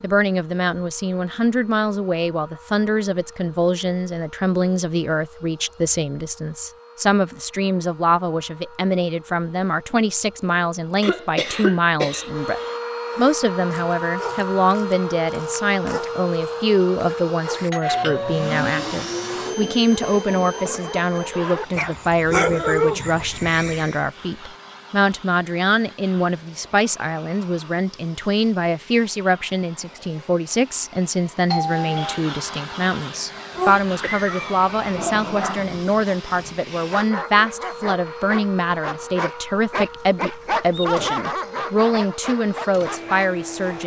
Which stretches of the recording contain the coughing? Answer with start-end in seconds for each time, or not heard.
11.0-12.8, 34.0-34.6.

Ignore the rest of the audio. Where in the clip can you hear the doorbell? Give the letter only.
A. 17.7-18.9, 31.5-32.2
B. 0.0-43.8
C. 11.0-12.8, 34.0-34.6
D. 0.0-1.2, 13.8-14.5
A.